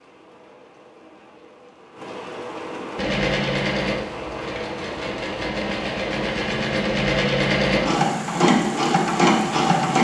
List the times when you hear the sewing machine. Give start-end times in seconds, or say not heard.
3.0-10.0.